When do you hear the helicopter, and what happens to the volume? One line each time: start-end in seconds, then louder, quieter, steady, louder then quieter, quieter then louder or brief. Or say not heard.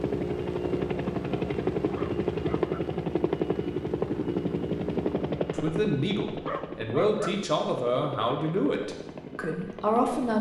0.0-10.3 quieter.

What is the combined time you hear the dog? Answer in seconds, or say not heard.
2 s.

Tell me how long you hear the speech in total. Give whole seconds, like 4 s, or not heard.
5 s.